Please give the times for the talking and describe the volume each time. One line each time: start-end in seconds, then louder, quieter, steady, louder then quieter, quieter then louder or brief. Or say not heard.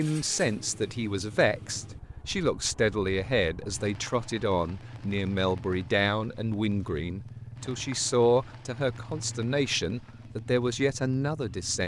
0.0-11.8 steady.